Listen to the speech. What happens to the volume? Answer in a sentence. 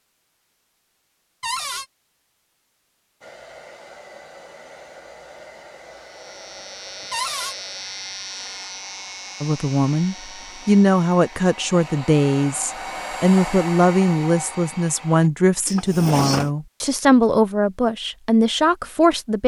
The loudness of the speech stays about the same.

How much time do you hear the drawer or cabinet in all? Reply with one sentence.
The drawer or cabinet can be heard for 2 seconds in total.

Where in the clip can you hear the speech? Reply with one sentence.
You can hear the speech from 9.4 to 19.4 s.